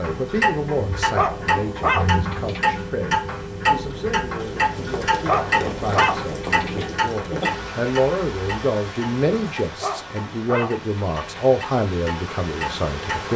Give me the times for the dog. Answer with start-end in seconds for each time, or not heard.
1.1-2.7, 5.2-6.9, 9.8-11.4.